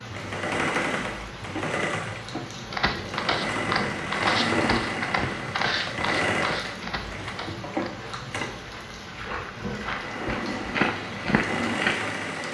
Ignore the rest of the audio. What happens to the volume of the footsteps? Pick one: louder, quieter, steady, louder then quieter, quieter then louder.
quieter then louder.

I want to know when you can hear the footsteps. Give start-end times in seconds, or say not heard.
2.7-11.9.